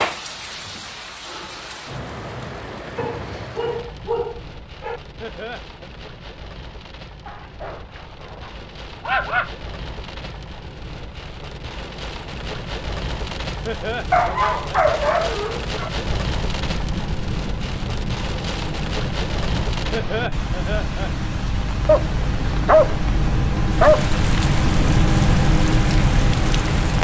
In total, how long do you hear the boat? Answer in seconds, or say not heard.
11 s.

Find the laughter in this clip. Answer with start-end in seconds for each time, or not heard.
5.2-5.9, 13.7-14.8, 19.9-21.1.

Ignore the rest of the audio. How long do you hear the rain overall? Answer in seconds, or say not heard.
27 s.